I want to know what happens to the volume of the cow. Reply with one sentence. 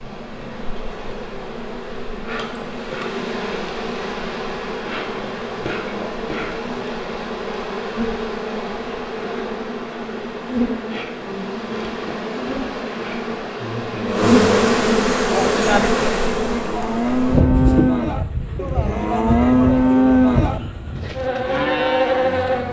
The volume of the cow goes up, then down.